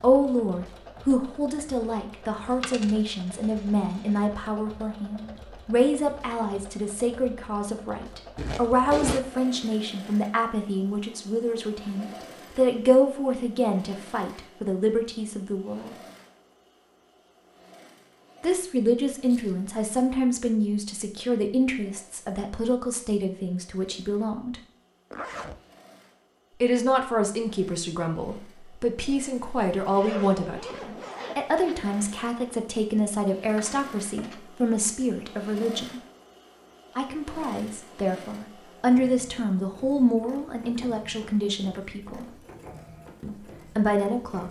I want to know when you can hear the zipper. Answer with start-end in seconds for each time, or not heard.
8.3-9.2, 25.1-25.6, 29.9-32.2.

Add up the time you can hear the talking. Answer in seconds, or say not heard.
38 s.